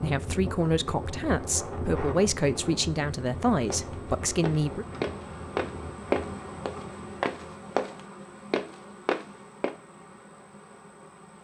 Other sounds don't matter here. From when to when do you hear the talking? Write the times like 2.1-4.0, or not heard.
0.0-4.8.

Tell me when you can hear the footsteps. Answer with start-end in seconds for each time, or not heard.
3.7-9.8.